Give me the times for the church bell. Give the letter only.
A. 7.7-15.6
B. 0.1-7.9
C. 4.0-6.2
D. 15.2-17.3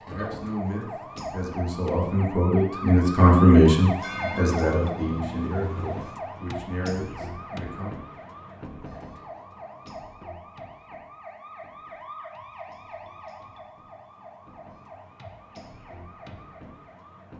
C.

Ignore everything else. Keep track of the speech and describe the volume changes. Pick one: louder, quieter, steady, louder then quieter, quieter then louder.
louder then quieter.